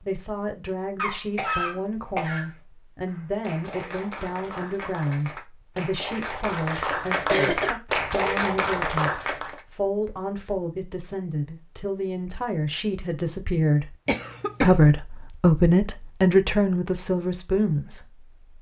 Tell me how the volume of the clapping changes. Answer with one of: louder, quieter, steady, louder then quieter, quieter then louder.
louder.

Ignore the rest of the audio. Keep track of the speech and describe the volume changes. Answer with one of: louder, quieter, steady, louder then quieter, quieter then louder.
louder.